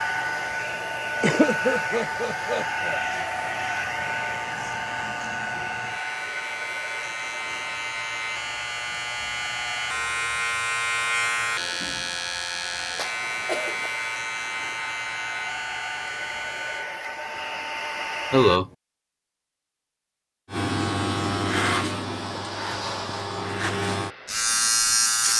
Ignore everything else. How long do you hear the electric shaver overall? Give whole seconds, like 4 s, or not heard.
22 s.